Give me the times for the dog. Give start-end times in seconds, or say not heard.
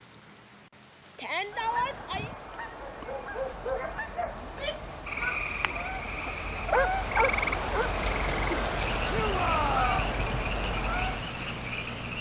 2.9-4.5, 6.7-7.9.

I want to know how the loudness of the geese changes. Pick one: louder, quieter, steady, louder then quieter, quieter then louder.
louder.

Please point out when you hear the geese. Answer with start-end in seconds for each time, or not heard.
1.4-11.3.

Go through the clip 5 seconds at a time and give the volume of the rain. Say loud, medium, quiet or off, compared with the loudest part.
quiet, loud, loud.